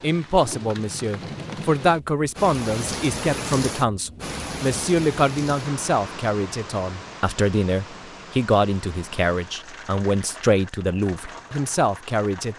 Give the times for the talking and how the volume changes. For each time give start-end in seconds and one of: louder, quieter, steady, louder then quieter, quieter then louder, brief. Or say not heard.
0.0-12.5 steady.